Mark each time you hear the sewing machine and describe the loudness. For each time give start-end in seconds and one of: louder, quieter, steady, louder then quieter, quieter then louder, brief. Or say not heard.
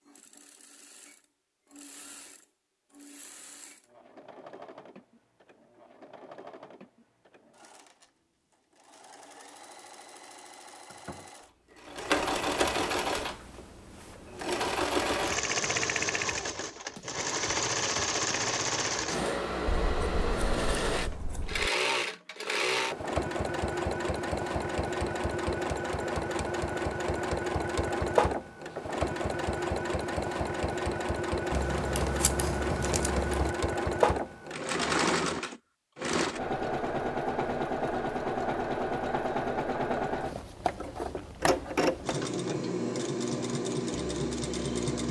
0.0-45.0 louder.